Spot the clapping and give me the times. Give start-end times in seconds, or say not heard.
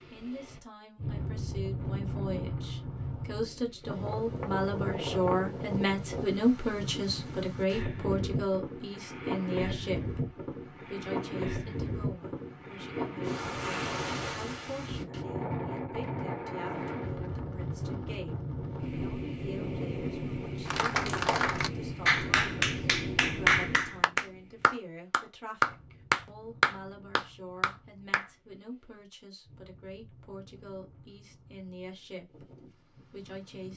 20.6-28.2.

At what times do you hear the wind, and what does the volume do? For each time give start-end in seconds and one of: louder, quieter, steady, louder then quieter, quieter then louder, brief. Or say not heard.
0.0-33.7 quieter.